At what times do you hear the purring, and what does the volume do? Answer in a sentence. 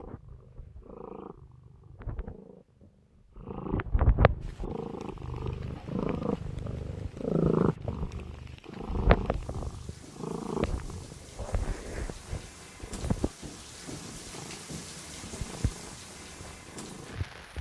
The purring can be heard from 0.0 to 17.5 s, getting louder then quieter.